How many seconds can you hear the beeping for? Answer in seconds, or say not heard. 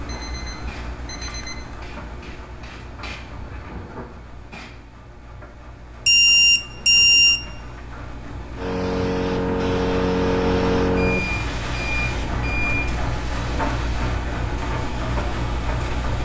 5 s.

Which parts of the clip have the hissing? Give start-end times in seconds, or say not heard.
0.0-4.8, 8.6-16.2.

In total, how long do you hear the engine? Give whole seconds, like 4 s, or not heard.
16 s.